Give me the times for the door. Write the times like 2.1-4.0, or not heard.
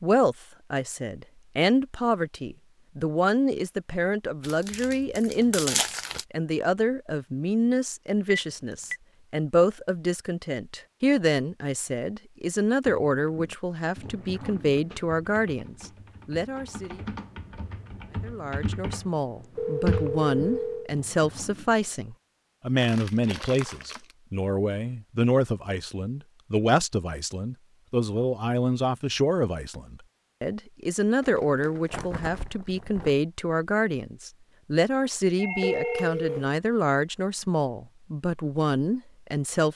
not heard.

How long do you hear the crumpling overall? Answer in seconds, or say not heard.
5 s.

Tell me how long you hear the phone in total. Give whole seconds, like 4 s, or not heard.
3 s.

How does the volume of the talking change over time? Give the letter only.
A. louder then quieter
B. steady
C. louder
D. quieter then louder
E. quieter
B.